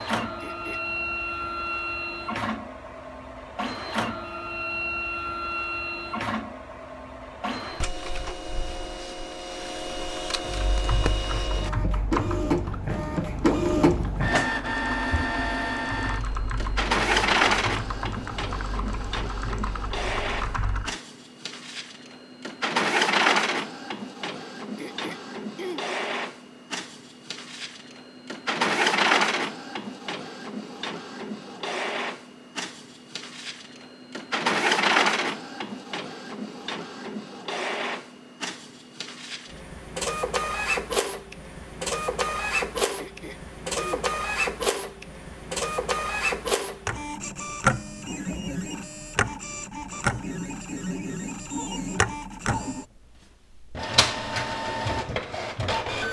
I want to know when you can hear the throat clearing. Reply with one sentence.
You can hear the throat clearing from 0.4 to 0.8 s, from 24.8 to 25.9 s and from 43.0 to 43.9 s.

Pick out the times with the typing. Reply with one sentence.
You can hear the typing from 10.4 to 20.9 s.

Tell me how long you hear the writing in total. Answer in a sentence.
You can't hear the writing here.